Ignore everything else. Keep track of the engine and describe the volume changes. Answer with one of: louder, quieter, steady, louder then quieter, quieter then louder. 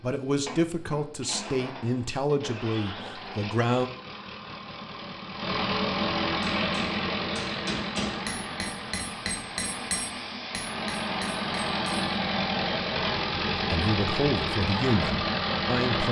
louder.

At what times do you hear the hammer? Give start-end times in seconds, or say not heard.
6.4-12.1.